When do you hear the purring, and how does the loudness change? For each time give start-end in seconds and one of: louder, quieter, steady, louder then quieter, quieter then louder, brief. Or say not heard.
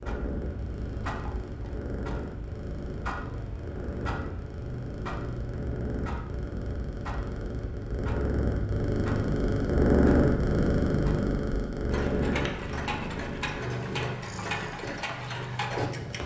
0.0-16.2 louder then quieter.